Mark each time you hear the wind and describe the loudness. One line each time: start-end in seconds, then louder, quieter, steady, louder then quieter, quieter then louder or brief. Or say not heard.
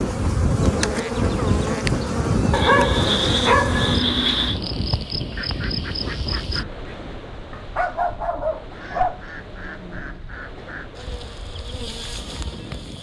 0.0-12.9 quieter.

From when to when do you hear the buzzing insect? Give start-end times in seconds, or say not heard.
0.0-6.7, 10.9-12.9.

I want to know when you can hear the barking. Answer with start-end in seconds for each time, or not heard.
2.5-4.6, 7.5-10.2.